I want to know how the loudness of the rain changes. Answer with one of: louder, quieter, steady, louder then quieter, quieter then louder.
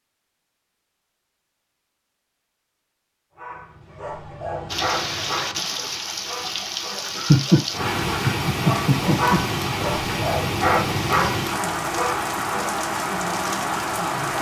steady.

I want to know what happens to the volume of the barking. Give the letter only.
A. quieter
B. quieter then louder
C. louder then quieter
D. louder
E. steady
B.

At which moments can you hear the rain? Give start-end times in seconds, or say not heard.
4.7-14.3.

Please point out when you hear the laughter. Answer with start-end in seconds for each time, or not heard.
7.1-9.4.